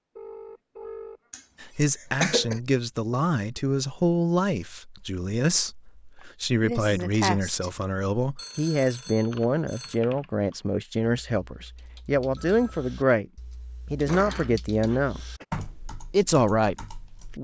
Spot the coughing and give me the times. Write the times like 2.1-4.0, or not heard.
1.3-2.6, 6.6-7.7, 13.8-15.4.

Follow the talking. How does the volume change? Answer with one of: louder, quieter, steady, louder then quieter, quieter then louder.
steady.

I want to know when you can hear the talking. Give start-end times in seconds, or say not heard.
1.6-13.2, 13.9-17.4.